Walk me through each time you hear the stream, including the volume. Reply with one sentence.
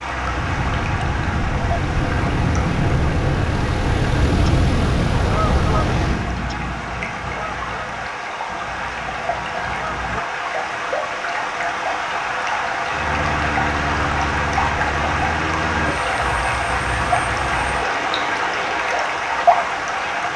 The stream can be heard from 0.0 to 20.3 s, getting louder.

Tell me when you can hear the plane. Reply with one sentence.
The plane can be heard from 0.0 to 6.3 s and from 12.8 to 19.0 s.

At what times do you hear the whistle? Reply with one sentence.
You can't hear the whistle here.